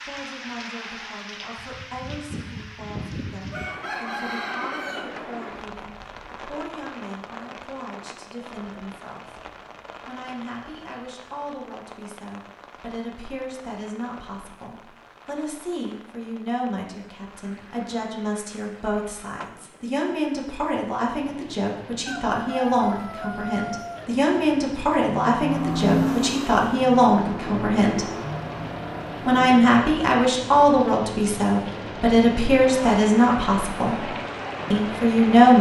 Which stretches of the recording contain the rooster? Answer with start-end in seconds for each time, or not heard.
3.5-5.2, 22.1-24.1.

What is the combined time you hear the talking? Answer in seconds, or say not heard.
33 s.